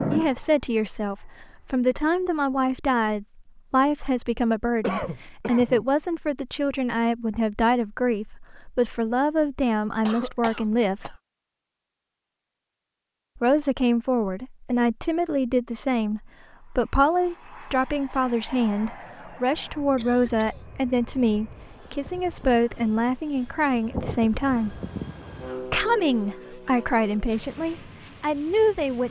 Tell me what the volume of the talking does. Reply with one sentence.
The volume of the talking stays about the same.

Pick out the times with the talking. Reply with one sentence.
The talking can be heard from 0.0 to 11.2 s, from 13.3 to 24.8 s and from 25.6 to 29.0 s.